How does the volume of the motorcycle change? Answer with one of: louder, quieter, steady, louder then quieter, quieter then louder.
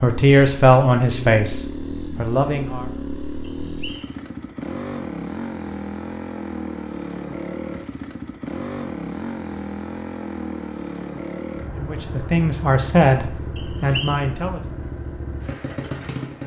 steady.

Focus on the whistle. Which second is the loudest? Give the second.
14 s.